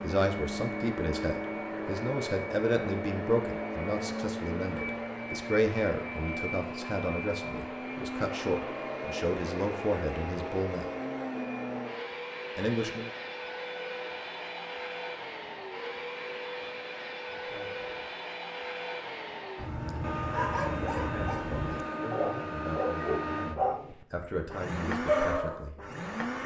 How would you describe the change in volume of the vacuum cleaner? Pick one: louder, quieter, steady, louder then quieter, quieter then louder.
steady.